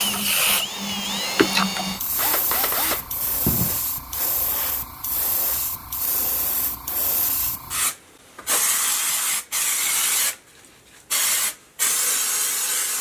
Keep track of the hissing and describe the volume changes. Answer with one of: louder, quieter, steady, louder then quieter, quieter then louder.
quieter then louder.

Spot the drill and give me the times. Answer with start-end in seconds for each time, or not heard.
0.0-3.9.